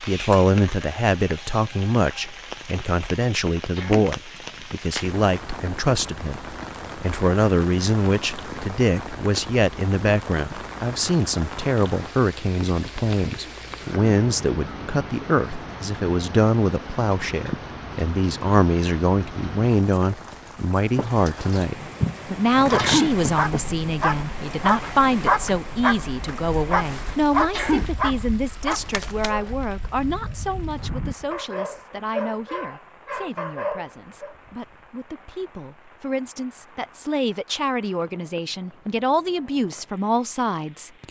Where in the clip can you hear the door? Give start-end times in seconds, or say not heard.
not heard.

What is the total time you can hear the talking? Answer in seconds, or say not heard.
41 s.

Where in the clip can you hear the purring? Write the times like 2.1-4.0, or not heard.
not heard.